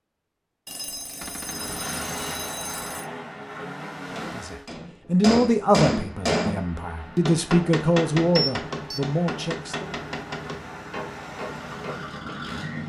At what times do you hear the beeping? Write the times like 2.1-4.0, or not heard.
0.7-3.0, 8.3-9.0.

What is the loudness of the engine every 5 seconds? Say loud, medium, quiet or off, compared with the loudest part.
loud, medium, loud.